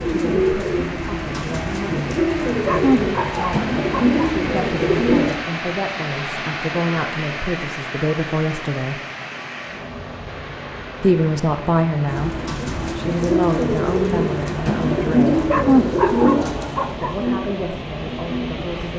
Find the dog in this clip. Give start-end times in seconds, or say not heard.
2.6-4.2, 15.5-17.1.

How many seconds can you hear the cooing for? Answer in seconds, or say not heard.
12 s.